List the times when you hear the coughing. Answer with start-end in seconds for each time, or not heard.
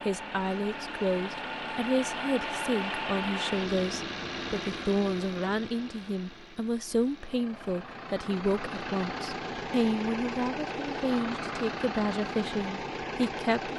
not heard.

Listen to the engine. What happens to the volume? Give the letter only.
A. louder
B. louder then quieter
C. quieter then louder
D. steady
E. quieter
C.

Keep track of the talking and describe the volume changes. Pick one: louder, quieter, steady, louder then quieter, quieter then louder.
steady.